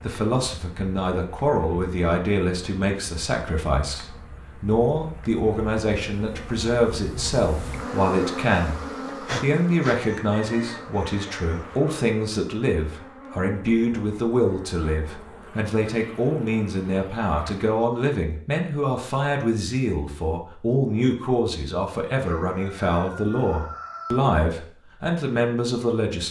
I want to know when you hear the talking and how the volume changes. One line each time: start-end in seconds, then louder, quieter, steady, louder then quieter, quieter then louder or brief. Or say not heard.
0.0-26.2 steady.